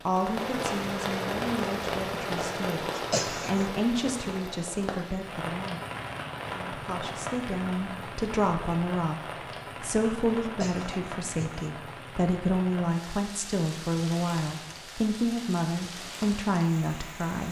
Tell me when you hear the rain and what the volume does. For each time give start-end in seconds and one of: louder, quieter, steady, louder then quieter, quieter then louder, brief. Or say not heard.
0.0-17.4 quieter.